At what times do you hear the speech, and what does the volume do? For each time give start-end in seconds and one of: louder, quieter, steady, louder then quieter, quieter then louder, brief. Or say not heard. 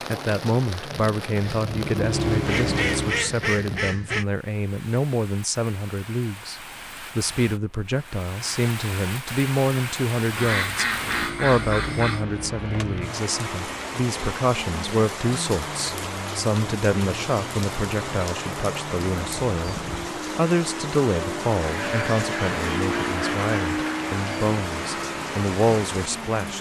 0.1-26.5 steady.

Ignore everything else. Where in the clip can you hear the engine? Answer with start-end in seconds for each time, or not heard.
0.0-3.3, 10.8-26.5.